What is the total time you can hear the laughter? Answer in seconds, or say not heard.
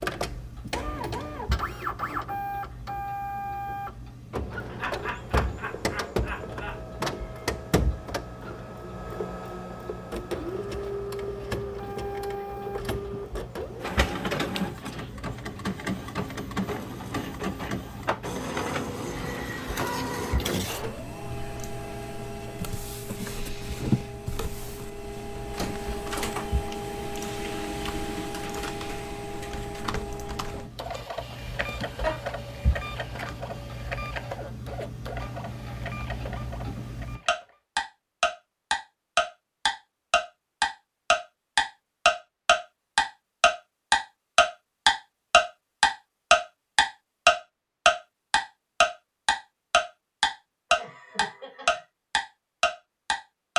4 s.